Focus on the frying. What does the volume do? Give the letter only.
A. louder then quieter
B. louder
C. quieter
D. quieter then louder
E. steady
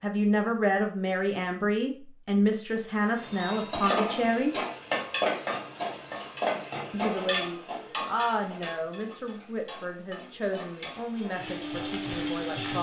D.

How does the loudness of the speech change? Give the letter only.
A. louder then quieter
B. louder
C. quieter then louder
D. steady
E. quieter
E.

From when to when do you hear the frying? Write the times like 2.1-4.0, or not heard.
3.0-12.7.